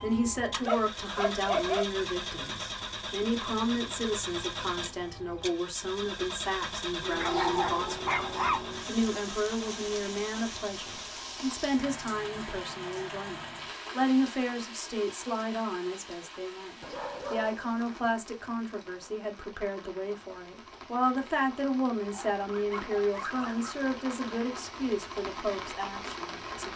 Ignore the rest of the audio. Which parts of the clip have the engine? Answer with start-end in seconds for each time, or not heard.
0.0-11.1.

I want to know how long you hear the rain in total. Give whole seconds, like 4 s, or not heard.
20 s.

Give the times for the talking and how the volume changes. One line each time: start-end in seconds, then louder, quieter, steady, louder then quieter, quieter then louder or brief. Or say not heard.
0.0-26.7 steady.